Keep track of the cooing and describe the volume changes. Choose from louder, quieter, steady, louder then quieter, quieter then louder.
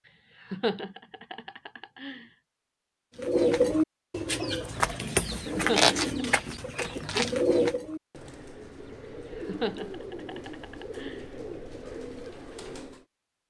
quieter.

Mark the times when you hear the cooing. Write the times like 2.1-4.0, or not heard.
3.1-13.1.